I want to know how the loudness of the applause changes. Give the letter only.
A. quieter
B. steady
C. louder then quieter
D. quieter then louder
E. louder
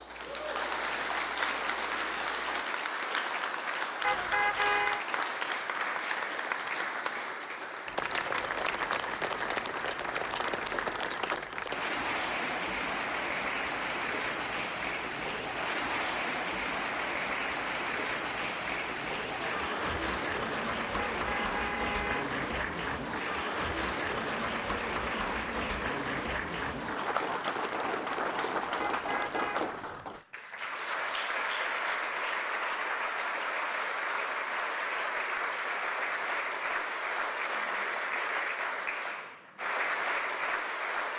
B.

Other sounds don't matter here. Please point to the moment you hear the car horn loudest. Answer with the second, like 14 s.
5 s.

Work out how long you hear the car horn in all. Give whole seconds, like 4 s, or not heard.
3 s.